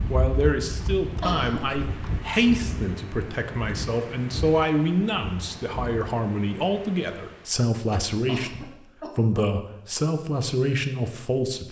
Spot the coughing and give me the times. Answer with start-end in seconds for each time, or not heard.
1.2-1.6, 8.2-9.4.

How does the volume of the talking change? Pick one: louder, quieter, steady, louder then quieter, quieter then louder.
steady.